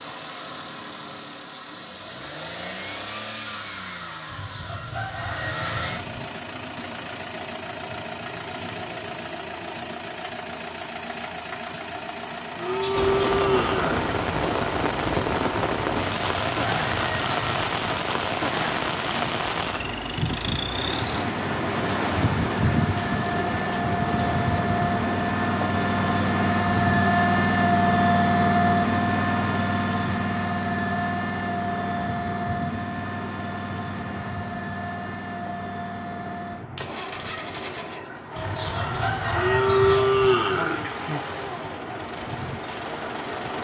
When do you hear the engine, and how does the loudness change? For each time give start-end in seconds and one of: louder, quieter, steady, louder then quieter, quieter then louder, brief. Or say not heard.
0.0-43.5 louder then quieter.